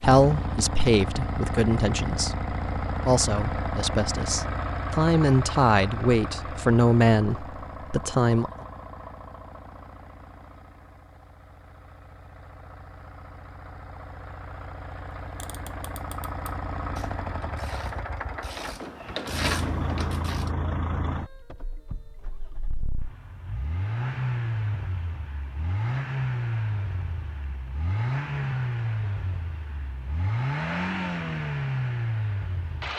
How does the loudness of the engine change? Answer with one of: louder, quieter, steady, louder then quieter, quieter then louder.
quieter then louder.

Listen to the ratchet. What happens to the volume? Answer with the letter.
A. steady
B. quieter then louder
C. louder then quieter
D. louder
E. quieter
D.